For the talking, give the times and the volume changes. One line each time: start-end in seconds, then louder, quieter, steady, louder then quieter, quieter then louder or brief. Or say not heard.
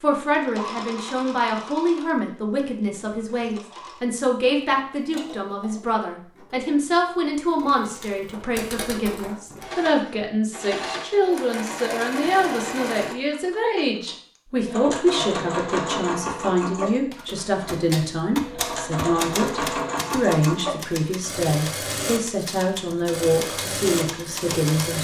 0.0-25.0 steady.